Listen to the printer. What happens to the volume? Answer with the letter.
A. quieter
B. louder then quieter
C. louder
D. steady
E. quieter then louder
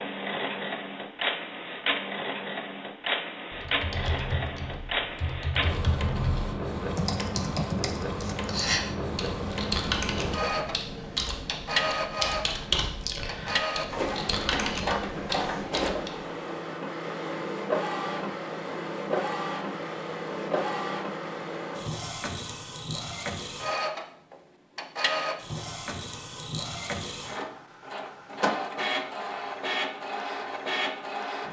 D.